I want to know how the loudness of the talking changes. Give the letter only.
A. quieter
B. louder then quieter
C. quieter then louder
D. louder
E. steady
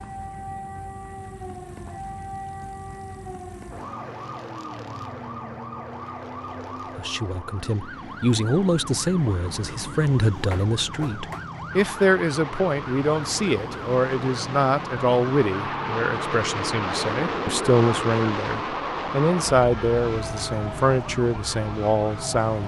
E.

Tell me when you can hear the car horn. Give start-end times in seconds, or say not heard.
10.5-11.4.